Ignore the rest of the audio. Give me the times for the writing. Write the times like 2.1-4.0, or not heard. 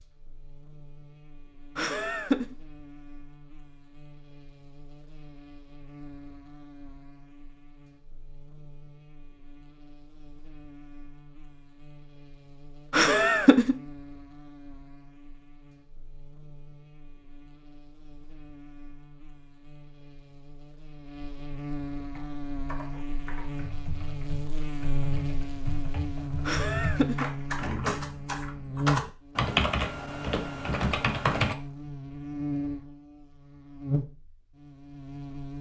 not heard.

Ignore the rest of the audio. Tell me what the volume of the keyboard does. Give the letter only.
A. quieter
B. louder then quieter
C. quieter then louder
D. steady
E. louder
E.